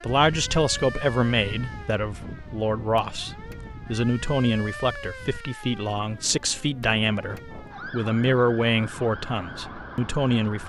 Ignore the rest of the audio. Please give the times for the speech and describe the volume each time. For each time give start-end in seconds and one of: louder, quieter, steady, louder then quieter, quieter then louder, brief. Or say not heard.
0.0-10.6 steady.